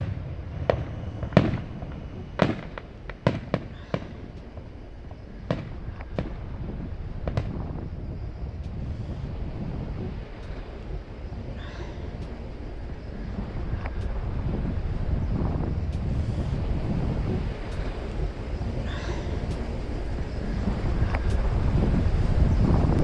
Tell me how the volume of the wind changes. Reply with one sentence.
The loudness of the wind goes up.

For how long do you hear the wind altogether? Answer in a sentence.
The wind can be heard for 23 seconds in total.